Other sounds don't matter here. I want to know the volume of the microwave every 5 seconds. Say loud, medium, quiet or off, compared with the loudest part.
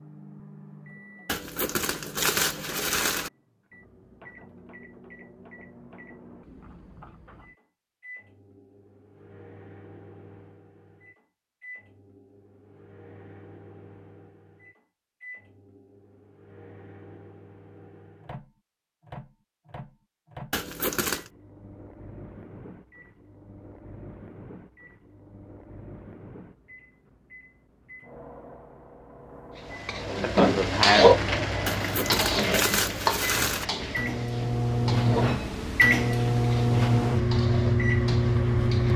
quiet, quiet, quiet, quiet, quiet, quiet, medium, loud.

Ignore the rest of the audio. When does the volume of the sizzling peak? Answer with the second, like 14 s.
31 s.